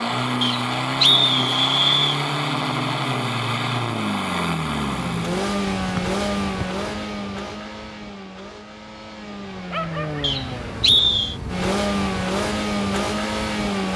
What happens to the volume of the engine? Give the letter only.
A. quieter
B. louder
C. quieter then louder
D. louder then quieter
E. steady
C.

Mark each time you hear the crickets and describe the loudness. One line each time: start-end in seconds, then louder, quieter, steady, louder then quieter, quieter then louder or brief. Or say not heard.
not heard.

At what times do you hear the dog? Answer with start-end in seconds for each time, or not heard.
9.7-10.3.